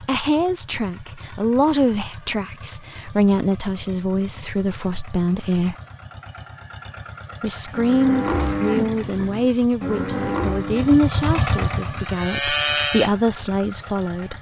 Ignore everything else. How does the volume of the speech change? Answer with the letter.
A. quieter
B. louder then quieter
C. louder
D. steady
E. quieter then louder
D.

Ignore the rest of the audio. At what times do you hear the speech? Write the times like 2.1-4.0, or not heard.
0.1-5.8, 7.4-14.3.